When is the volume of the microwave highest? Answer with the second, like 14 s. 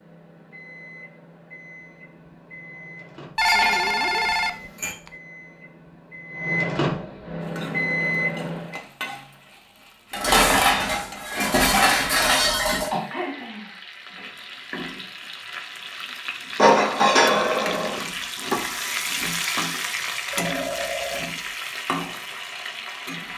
8 s.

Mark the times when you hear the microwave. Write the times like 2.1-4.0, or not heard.
0.0-8.8.